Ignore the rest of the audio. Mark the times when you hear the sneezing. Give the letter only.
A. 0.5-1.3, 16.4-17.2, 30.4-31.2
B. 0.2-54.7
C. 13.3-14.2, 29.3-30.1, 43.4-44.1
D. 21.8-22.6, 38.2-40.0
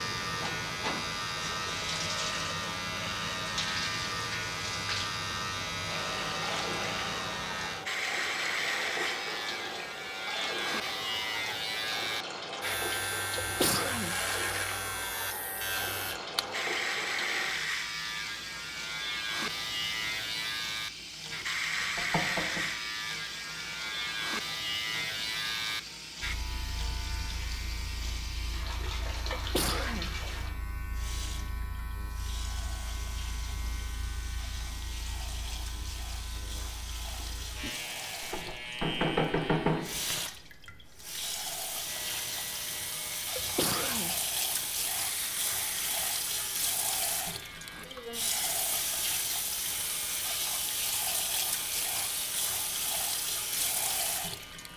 C.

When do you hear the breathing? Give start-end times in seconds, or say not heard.
not heard.